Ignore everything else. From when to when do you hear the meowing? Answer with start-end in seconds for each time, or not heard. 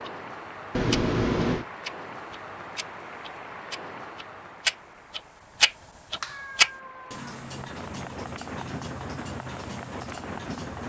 0.7-1.6, 6.2-7.4.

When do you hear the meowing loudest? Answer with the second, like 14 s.
1 s.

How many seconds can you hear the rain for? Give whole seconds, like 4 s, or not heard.
11 s.